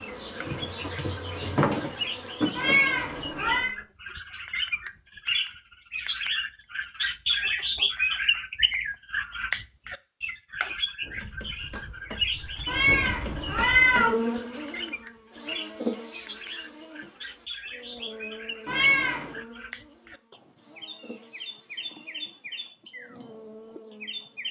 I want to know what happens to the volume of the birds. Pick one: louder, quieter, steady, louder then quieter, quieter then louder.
louder then quieter.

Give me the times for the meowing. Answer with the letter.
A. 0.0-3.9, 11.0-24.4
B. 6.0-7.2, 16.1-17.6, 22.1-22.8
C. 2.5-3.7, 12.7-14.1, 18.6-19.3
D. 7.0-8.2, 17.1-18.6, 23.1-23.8
C.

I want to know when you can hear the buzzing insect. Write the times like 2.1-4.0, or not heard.
0.0-3.9, 11.0-24.4.